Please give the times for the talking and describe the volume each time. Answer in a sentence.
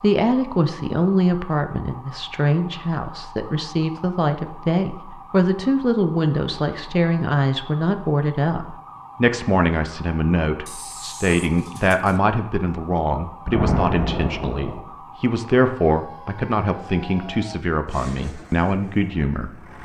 You can hear the talking from 0.0 to 19.6 s, at a steady volume.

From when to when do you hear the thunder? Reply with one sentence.
You can hear the thunder from 13.4 to 14.8 s.